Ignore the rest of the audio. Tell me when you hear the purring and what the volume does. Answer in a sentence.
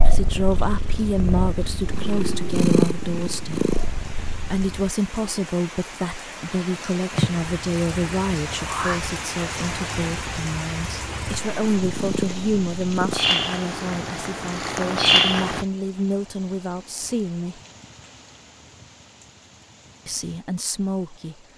You can hear the purring from 0.0 to 4.9 s, getting louder then quieter; and from 7.1 to 15.7 s, getting quieter then louder.